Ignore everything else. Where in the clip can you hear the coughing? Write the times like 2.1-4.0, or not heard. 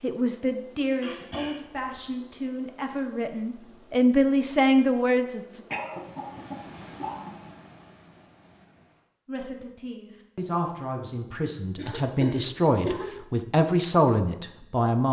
1.0-2.0, 5.7-7.5, 11.8-13.2.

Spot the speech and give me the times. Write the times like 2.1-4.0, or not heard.
0.0-5.7, 9.2-15.0.